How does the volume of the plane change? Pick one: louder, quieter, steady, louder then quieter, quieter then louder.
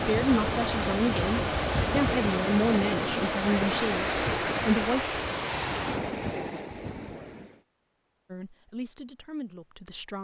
steady.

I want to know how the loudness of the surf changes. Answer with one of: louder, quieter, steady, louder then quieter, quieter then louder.
steady.